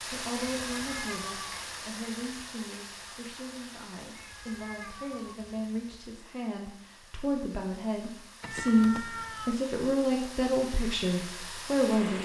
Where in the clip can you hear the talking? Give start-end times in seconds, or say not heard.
0.1-12.2.